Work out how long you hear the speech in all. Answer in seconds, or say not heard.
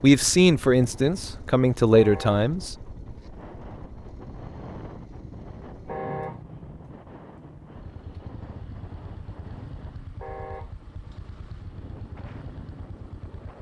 3 s.